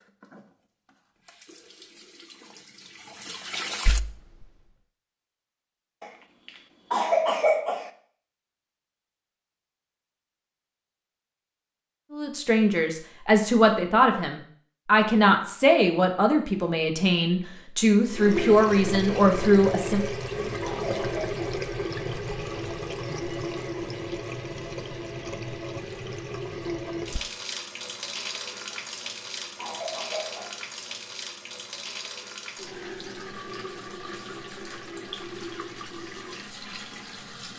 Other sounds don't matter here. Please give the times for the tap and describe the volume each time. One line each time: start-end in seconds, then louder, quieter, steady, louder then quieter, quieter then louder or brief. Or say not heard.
0.0-4.7 louder
18.1-37.5 quieter.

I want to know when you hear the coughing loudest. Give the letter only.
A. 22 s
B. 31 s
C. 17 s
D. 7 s
D.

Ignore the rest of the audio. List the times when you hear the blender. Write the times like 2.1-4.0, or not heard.
not heard.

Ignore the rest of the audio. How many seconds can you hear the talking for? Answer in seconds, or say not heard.
8 s.